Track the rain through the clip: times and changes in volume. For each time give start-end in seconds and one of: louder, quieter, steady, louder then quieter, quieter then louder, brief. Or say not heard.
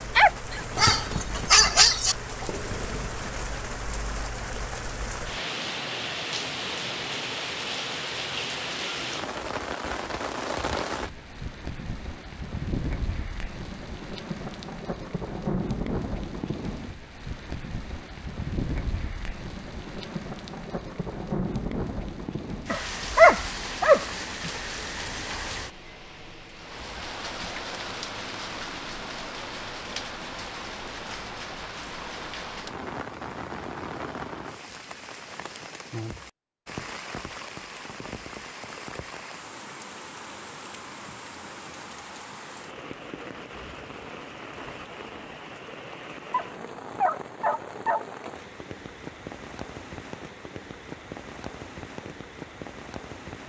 0.0-53.4 quieter.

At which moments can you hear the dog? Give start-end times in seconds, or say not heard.
0.1-2.1, 22.7-24.5, 46.3-48.0.